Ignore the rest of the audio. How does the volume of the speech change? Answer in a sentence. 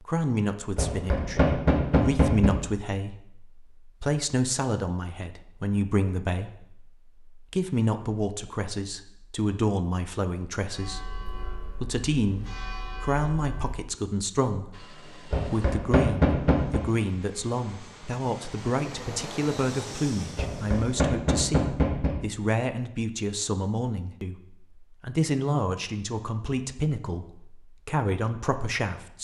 The volume of the speech stays about the same.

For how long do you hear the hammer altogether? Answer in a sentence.
The hammer can be heard for 5 seconds in total.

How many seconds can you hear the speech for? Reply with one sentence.
You can hear the speech for 29 seconds altogether.